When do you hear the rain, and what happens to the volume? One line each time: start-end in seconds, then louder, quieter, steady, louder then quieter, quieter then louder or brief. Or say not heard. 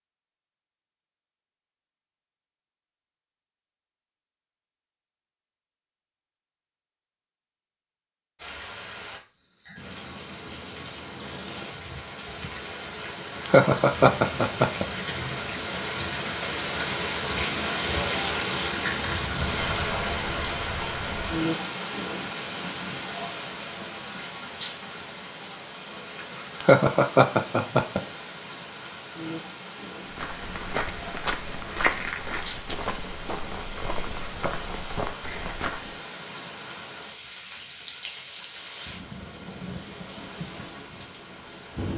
8.3-41.9 louder then quieter.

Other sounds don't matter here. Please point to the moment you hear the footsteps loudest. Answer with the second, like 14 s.
32 s.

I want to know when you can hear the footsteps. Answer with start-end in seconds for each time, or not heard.
30.1-36.0.